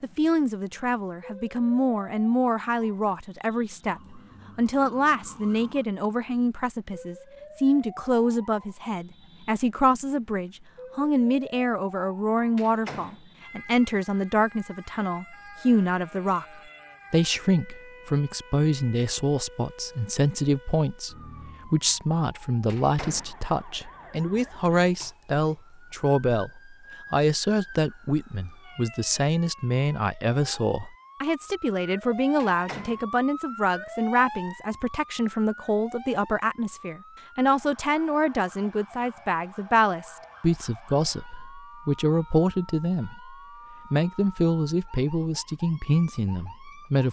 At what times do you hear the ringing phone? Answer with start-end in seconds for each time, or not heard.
not heard.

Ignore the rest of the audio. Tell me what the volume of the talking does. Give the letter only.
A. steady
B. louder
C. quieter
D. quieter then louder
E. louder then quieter
A.